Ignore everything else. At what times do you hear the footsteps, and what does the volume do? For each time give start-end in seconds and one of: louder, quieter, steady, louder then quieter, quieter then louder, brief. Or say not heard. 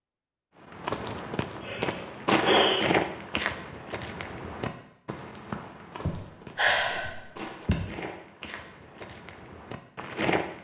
0.7-10.5 quieter.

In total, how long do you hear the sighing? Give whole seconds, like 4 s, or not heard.
3 s.